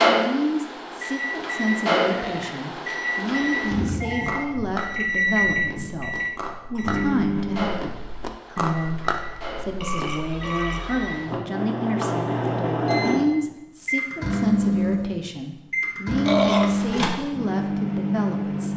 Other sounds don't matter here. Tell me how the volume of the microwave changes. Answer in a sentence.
The volume of the microwave goes down, then up.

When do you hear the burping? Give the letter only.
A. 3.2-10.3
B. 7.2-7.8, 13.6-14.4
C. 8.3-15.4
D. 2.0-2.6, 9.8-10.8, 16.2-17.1
D.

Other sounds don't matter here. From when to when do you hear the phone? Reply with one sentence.
The phone can be heard from 4.0 to 4.5 s and from 10.3 to 11.2 s.